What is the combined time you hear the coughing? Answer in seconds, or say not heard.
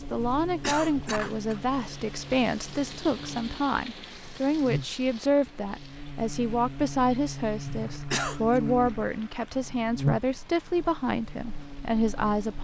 2 s.